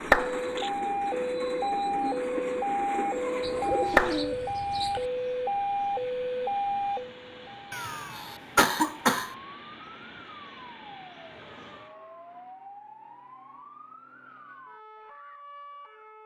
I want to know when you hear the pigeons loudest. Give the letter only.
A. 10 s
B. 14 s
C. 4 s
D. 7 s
C.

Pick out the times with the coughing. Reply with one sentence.
The coughing can be heard from 7.7 to 9.3 s.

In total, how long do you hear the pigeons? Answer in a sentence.
The pigeons can be heard for 2 seconds in total.